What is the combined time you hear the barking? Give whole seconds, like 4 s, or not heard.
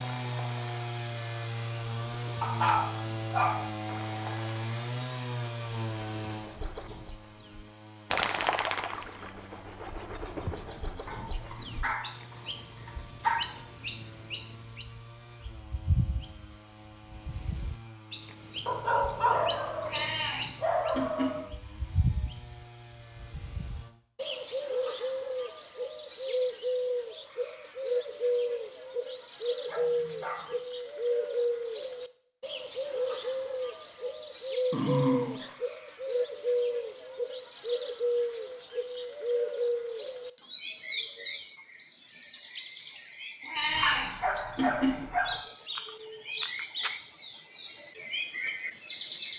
10 s.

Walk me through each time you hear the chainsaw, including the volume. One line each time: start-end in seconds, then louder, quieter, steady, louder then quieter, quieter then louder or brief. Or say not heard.
0.0-23.9 quieter.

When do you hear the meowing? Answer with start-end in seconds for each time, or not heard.
19.8-21.4, 43.5-45.0.